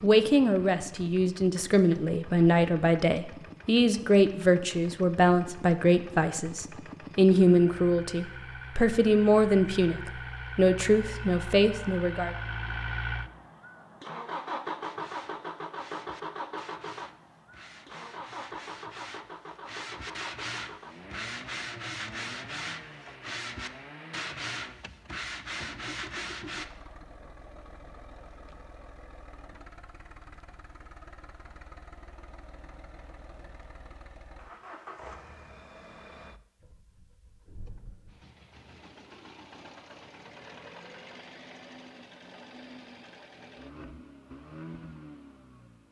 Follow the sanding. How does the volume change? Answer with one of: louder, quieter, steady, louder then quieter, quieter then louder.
louder.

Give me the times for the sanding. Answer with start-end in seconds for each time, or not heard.
14.8-26.6.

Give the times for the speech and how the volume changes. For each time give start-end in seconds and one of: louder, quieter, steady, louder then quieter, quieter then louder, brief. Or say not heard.
0.0-12.3 steady.